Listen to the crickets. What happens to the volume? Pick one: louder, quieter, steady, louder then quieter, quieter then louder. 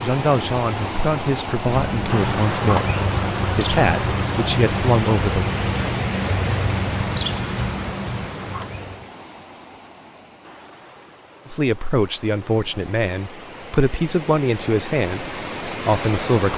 steady.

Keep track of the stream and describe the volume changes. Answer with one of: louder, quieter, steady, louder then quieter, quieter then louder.
quieter then louder.